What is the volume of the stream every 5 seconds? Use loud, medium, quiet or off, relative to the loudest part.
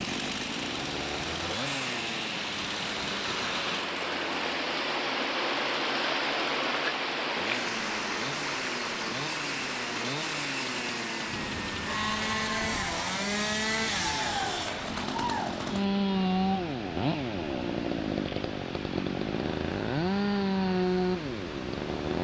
loud, loud, medium, medium, medium.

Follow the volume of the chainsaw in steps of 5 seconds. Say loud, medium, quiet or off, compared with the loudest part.
medium, medium, loud, loud, loud.